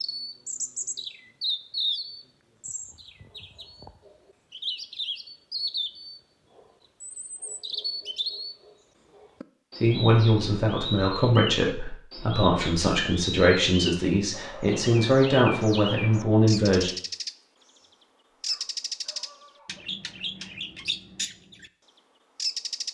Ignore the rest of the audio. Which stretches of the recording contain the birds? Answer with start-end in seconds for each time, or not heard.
0.0-17.4, 18.4-21.7, 22.4-22.9.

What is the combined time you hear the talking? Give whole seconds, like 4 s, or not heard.
7 s.